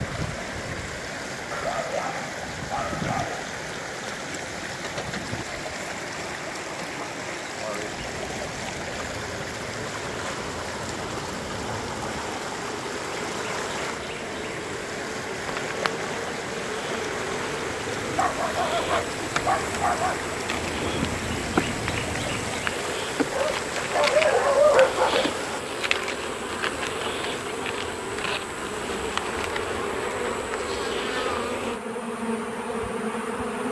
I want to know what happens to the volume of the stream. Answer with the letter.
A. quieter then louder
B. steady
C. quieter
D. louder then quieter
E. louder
B.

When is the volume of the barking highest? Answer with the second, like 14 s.
25 s.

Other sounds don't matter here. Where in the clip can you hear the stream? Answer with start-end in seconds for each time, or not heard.
0.0-25.6.